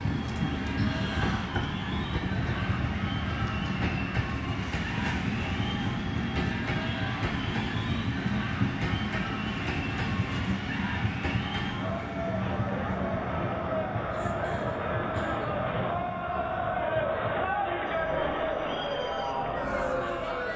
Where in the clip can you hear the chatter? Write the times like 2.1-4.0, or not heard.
0.0-20.5.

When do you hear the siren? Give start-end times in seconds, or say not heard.
not heard.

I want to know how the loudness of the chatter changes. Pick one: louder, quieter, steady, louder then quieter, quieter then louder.
louder.